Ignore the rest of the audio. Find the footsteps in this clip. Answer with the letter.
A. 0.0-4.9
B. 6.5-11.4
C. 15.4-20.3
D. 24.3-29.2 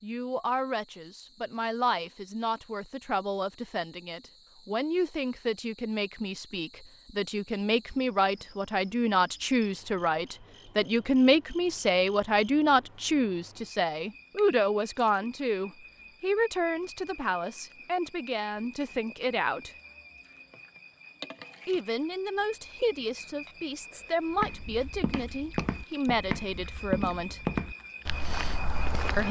D.